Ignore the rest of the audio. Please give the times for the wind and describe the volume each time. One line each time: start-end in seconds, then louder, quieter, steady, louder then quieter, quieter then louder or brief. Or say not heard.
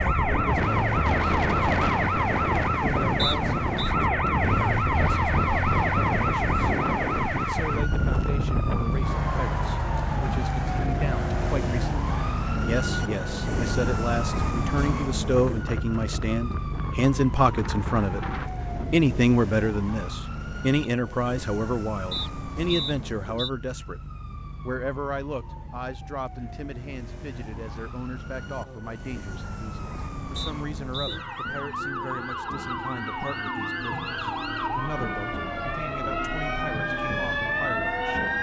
0.0-19.4 quieter.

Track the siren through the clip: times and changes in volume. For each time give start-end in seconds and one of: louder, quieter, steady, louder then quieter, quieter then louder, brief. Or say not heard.
0.0-38.3 quieter then louder.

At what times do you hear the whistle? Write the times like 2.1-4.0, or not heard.
3.1-3.9, 22.1-23.5, 30.4-31.2.